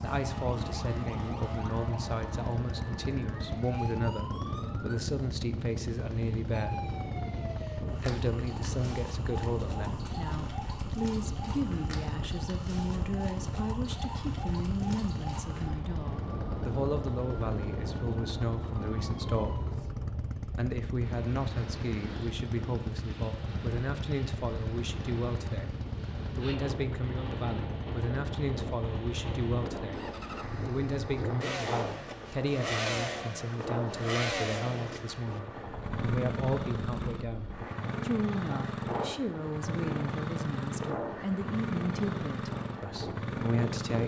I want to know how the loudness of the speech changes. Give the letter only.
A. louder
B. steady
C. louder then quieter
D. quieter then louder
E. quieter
B.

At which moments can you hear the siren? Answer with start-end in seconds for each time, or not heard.
0.0-5.0, 6.5-19.6.